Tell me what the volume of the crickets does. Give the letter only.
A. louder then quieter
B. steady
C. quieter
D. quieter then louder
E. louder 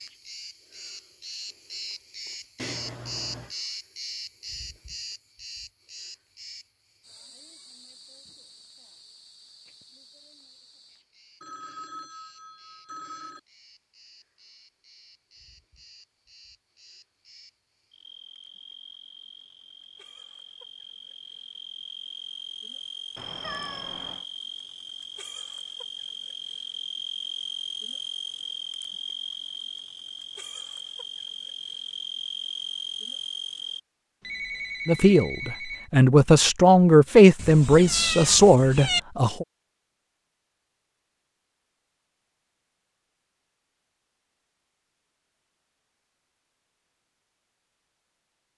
D.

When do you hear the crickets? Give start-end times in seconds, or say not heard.
0.0-33.8.